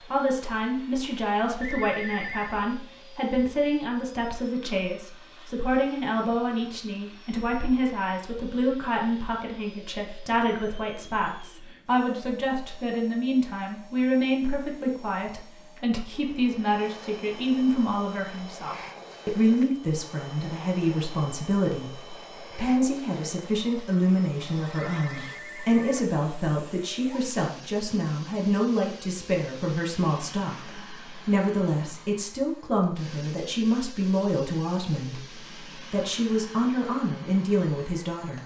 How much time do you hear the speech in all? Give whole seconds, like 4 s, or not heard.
38 s.